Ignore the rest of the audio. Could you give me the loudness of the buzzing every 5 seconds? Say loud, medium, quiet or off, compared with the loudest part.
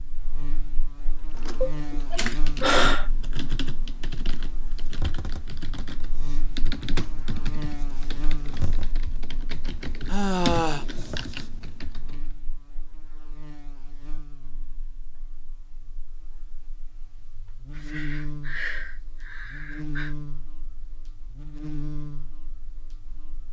loud, loud, medium, loud, loud.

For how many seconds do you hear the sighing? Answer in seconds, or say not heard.
5 s.